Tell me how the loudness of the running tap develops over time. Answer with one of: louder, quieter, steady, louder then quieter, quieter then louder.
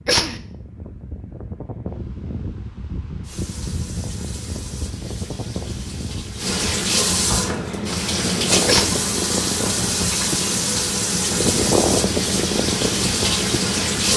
louder.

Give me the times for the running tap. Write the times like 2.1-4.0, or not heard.
3.2-14.1.